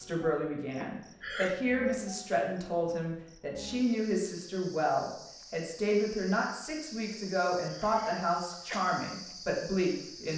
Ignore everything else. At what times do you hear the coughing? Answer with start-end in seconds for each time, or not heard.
0.8-1.6, 7.2-8.8.